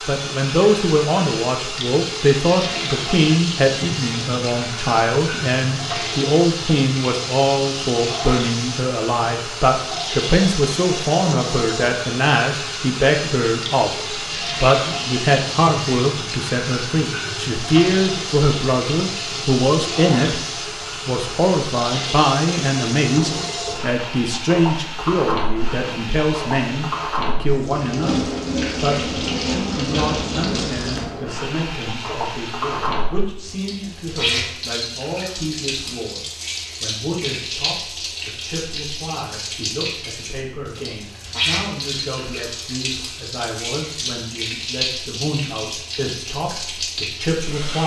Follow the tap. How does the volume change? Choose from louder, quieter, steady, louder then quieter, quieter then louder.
steady.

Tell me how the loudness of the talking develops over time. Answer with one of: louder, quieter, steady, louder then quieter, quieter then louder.
quieter.